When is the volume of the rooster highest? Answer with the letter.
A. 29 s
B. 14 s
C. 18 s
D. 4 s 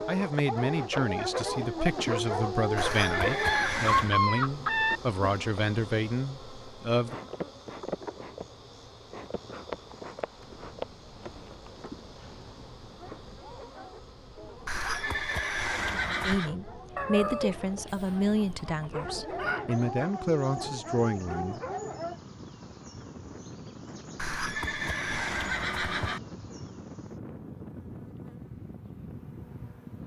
D.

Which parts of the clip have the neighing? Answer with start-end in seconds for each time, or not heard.
2.8-4.2, 14.7-16.6, 24.1-26.2.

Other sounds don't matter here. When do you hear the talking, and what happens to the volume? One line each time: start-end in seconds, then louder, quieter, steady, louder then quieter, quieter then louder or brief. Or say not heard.
0.1-7.2 steady
16.2-21.6 quieter then louder.